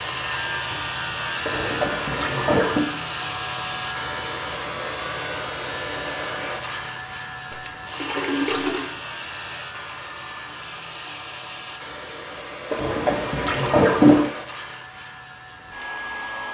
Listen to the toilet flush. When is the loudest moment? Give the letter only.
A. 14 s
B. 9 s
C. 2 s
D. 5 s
A.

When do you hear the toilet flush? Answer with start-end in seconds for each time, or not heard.
1.4-2.9, 7.5-8.9, 12.7-14.3.